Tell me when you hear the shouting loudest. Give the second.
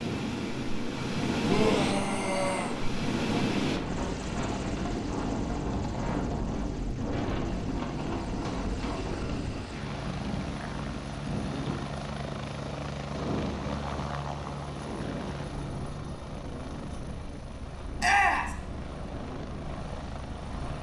18 s.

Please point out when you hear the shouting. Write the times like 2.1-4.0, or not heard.
1.4-2.8, 18.0-18.6.